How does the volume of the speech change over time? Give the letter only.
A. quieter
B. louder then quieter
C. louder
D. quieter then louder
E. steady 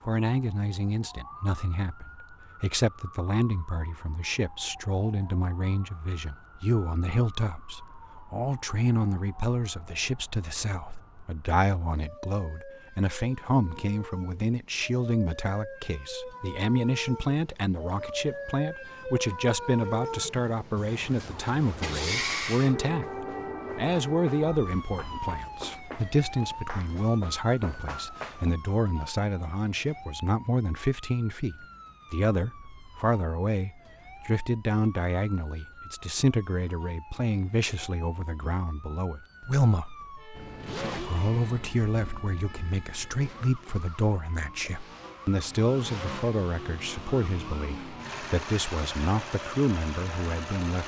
E.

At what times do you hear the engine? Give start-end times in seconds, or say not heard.
40.4-50.8.